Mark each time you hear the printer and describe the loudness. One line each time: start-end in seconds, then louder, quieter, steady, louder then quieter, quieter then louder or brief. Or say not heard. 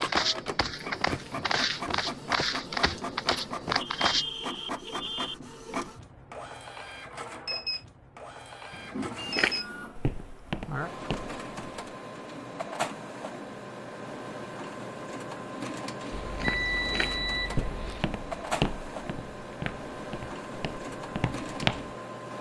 0.0-22.3 steady.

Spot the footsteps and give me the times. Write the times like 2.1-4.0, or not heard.
0.0-4.2, 9.2-11.8, 16.1-21.9.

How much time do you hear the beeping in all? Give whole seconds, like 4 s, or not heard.
5 s.